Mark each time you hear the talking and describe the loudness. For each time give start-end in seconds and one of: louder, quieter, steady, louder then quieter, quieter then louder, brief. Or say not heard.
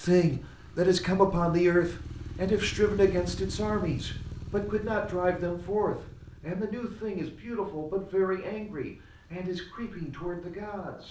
0.0-11.0 quieter.